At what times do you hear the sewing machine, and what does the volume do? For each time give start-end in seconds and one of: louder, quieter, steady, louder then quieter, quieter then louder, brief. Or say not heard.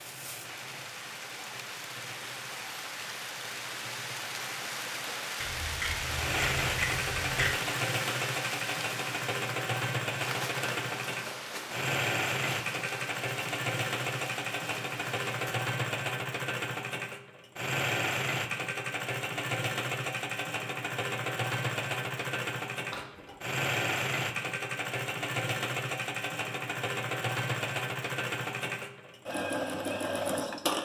0.0-30.7 louder.